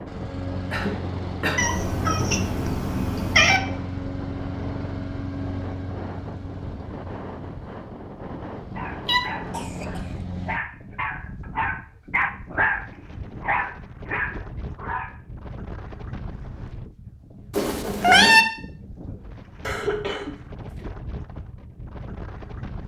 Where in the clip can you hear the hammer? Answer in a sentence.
The hammer can't be heard in this clip.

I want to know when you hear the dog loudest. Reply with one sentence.
The volume of the dog peaks at 13 seconds.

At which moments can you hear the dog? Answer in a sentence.
You can hear the dog from 8.8 to 15.2 s.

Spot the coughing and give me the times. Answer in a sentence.
The coughing can be heard from 0.7 to 1.6 s, from 9.5 to 10.2 s and from 19.6 to 20.8 s.